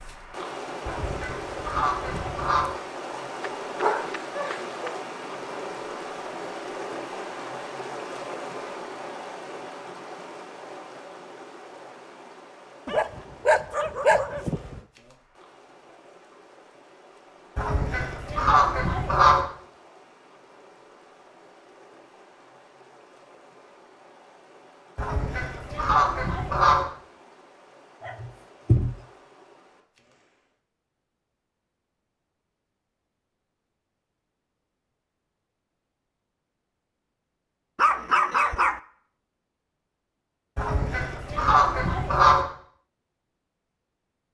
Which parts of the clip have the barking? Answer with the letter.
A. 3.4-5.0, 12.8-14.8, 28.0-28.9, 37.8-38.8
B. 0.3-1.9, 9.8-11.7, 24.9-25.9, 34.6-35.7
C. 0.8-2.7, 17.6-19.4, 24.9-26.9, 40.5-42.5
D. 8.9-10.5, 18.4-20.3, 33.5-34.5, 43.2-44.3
A.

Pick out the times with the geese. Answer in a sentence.
You can hear the geese from 0.8 to 2.7 s, from 17.6 to 19.4 s, from 24.9 to 26.9 s and from 40.5 to 42.5 s.